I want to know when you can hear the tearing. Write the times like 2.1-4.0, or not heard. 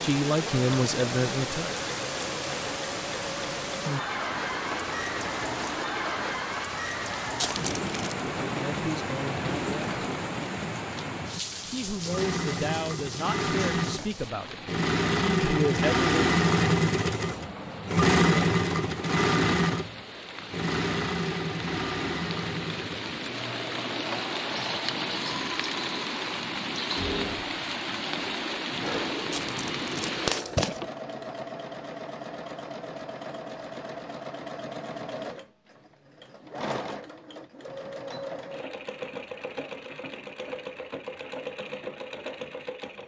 7.3-8.2, 29.3-30.9.